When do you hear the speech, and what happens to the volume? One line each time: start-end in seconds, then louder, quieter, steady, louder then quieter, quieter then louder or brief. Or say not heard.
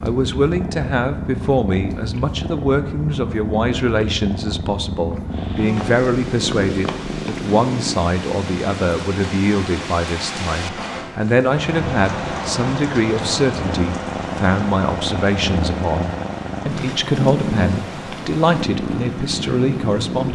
0.0-20.3 steady.